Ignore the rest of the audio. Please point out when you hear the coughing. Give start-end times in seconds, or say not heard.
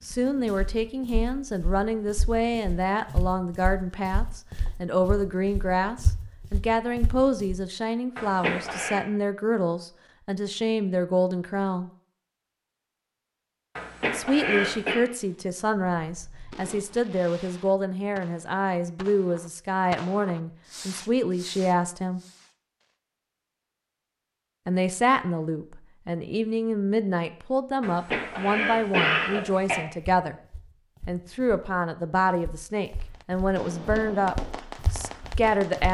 8.2-9.1, 13.8-15.0, 27.8-29.9.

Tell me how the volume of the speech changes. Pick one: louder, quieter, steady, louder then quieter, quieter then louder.
steady.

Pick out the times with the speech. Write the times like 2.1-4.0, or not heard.
0.0-11.9, 14.1-22.2, 24.6-30.4, 31.1-35.8.